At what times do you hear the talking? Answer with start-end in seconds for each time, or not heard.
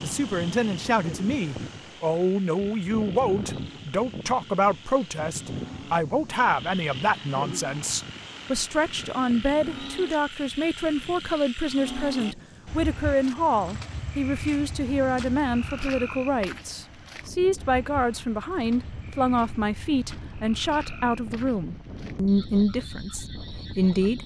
0.0-24.2.